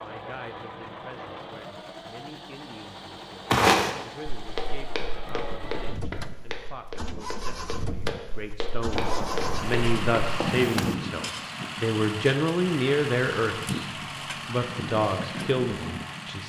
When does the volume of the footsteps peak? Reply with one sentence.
The volume of the footsteps peaks at 4 seconds.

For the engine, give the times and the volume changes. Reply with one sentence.
The engine can be heard from 0.0 to 16.4 s, getting louder.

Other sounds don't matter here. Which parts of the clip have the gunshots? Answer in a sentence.
The gunshots can be heard from 8.9 to 10.9 s.